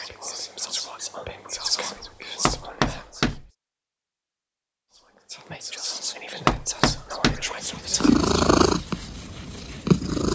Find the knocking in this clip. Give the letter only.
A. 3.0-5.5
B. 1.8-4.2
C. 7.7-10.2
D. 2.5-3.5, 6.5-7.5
D.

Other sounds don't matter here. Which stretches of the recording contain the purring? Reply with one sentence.
You can hear the purring from 7.7 to 10.2 s.